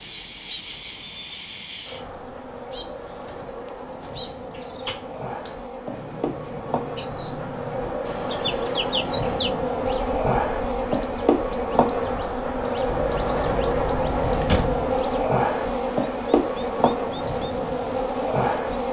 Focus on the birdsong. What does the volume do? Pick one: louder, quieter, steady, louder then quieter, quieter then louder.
quieter then louder.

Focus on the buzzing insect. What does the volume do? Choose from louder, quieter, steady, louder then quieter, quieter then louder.
louder.